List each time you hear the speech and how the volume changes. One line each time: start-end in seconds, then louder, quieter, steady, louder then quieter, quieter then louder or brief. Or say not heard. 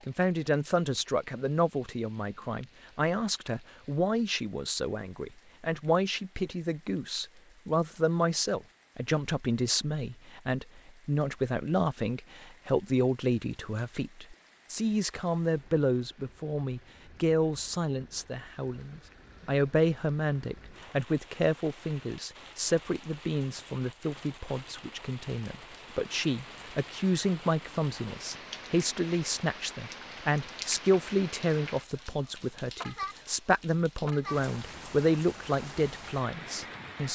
0.1-37.0 steady.